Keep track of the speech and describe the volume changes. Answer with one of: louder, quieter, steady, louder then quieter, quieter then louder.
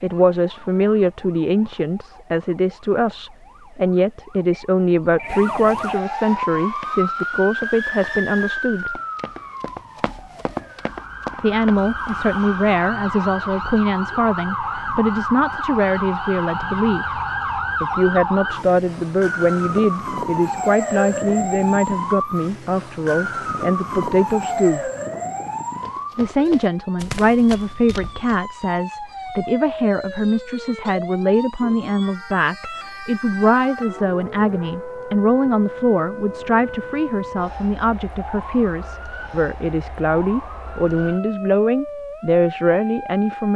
steady.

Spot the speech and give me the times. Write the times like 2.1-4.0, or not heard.
0.0-9.0, 11.4-17.2, 17.8-24.9, 26.1-43.5.